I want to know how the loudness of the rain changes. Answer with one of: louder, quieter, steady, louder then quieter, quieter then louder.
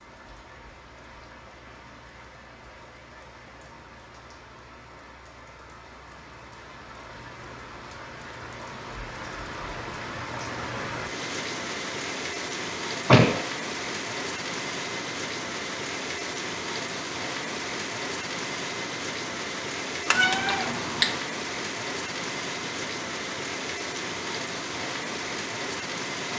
louder.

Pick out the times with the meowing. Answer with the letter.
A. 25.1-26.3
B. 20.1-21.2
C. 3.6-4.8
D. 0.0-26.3
B.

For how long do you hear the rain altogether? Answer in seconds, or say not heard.
26 s.